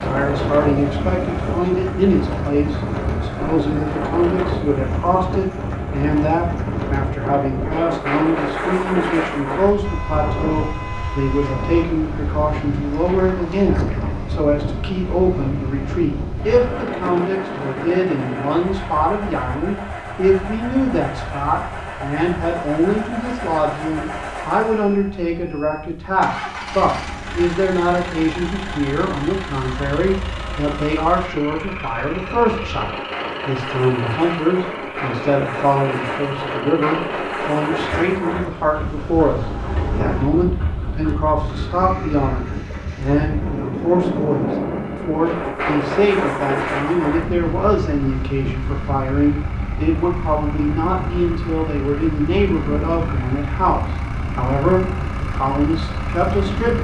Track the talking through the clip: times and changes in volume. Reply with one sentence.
You can hear the talking from 0.0 to 56.7 s, at a steady volume.